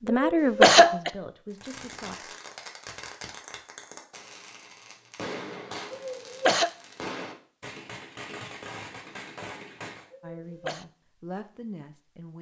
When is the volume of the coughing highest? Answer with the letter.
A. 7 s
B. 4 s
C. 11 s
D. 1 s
D.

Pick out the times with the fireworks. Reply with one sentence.
You can hear the fireworks from 1.5 to 10.1 s.